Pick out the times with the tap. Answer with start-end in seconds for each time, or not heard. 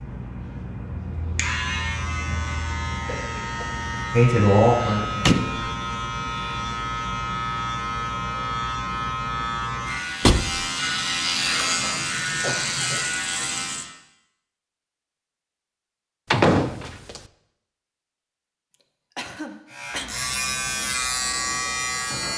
11.3-13.8.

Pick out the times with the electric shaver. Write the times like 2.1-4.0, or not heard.
0.0-13.9, 19.7-22.3.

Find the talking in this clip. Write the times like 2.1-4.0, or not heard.
4.1-5.7.